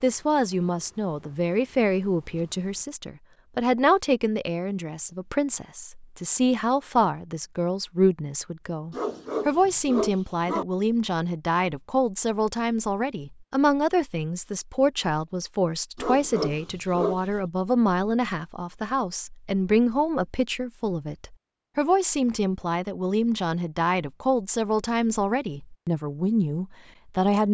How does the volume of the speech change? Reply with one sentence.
The volume of the speech stays about the same.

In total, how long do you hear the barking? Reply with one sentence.
The barking can be heard for 3 seconds in total.